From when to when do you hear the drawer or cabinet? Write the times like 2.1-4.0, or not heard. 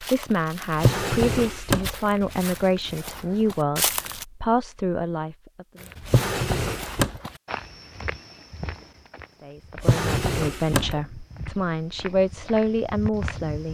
0.8-2.0, 6.0-7.2, 9.8-11.0.